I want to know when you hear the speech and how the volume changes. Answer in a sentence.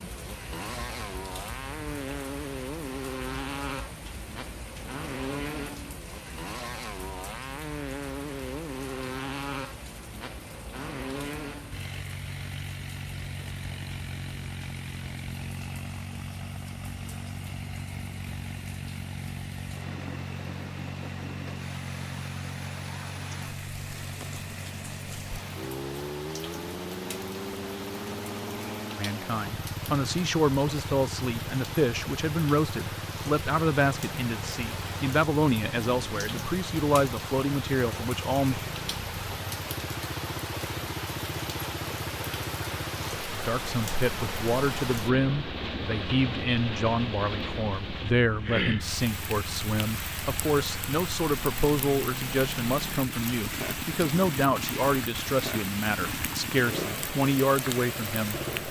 You can hear the speech from 28.9 to 38.6 s, at a steady volume; and from 43.3 to 58.4 s, at a steady volume.